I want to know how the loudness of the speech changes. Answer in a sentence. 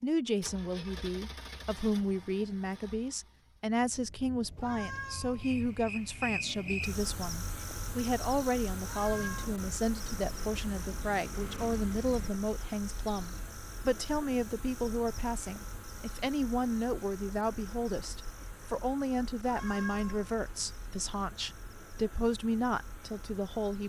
The loudness of the speech stays about the same.